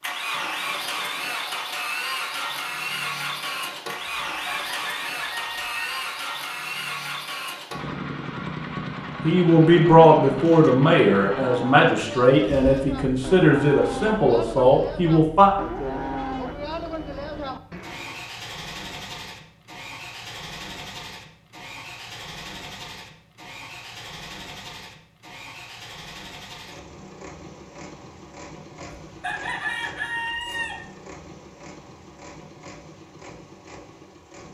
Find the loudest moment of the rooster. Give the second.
30 s.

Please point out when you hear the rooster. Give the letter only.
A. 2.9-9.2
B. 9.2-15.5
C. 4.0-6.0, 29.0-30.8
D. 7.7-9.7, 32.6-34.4
C.